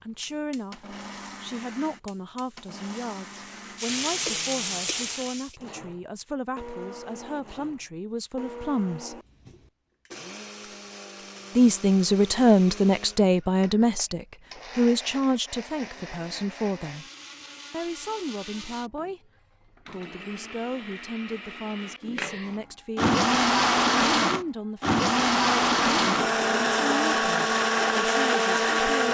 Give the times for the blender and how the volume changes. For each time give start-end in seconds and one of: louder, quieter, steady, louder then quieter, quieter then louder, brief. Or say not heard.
0.0-29.0 louder.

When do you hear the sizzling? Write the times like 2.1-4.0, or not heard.
2.4-5.5.